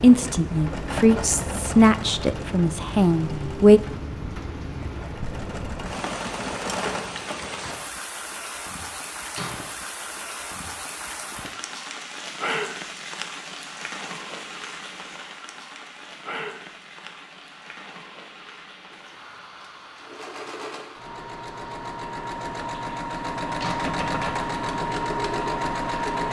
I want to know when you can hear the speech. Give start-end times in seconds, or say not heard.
0.0-3.8.